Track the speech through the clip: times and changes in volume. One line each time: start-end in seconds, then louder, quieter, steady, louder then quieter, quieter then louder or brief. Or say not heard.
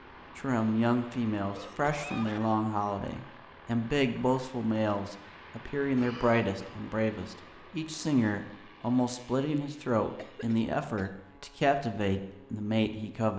0.3-13.3 steady.